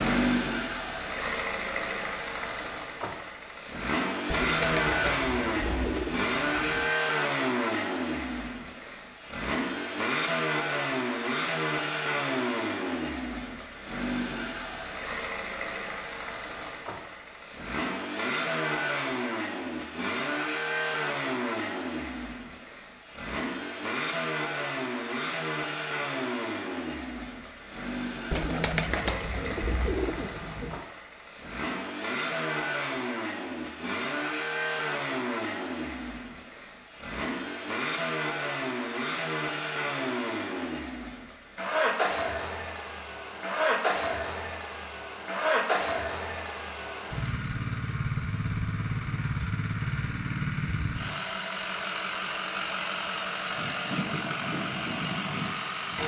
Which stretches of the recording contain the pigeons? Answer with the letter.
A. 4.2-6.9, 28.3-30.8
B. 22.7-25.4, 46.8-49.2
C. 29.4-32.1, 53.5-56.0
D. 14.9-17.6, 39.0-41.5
A.